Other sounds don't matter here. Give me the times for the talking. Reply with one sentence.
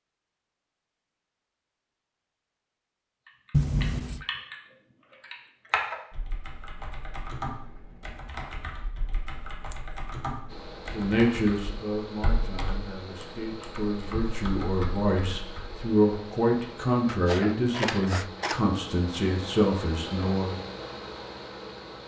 You can hear the talking from 10.9 to 20.6 s.